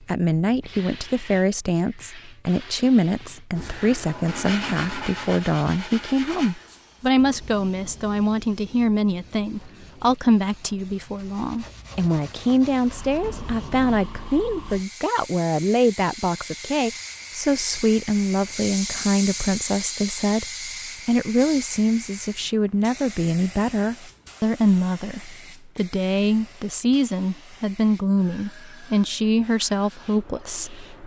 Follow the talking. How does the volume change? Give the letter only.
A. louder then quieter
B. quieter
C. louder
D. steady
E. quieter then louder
D.